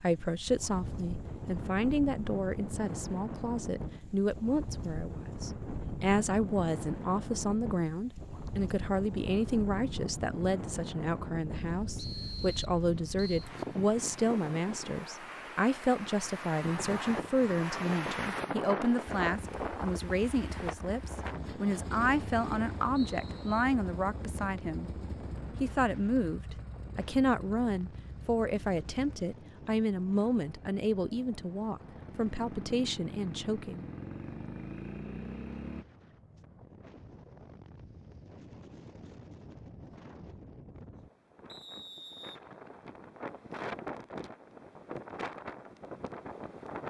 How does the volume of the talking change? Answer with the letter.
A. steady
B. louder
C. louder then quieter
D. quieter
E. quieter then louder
A.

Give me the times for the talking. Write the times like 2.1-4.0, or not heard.
0.0-24.9, 25.6-33.9.